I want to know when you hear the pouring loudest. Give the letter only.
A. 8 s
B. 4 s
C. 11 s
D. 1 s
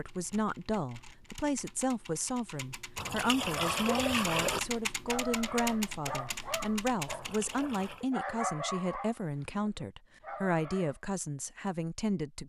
B.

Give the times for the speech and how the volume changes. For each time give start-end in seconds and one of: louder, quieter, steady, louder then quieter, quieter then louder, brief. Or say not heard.
0.0-12.4 steady.